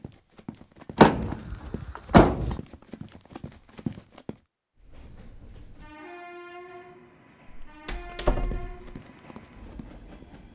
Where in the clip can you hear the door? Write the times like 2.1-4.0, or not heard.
0.9-2.5, 7.5-8.8.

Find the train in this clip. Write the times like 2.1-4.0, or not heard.
4.8-10.5.